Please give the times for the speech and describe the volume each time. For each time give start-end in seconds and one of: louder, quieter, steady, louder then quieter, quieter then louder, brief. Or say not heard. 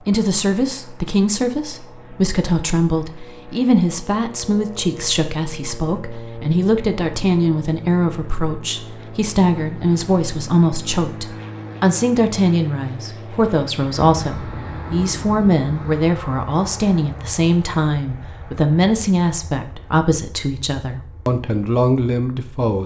0.1-22.8 steady.